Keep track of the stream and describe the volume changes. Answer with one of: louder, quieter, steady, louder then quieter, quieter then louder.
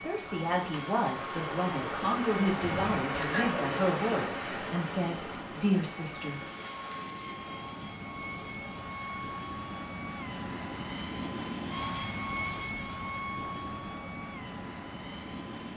quieter.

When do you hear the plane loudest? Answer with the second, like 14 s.
12 s.